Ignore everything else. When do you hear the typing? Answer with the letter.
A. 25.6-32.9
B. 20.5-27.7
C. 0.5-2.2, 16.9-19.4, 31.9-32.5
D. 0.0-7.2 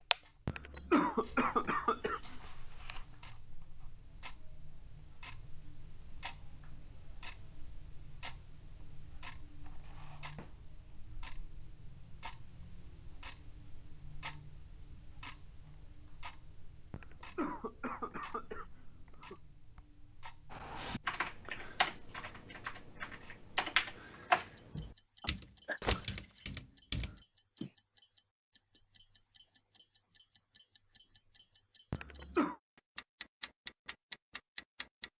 B.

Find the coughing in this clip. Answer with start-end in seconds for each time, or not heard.
0.5-2.2, 16.9-19.4, 31.9-32.5.